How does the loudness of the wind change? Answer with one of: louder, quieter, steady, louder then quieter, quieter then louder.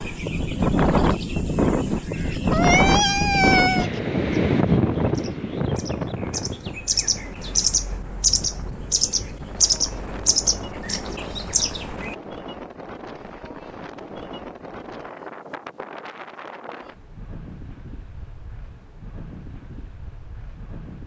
quieter.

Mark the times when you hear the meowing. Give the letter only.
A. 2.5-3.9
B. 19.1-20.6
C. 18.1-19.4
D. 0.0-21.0
A.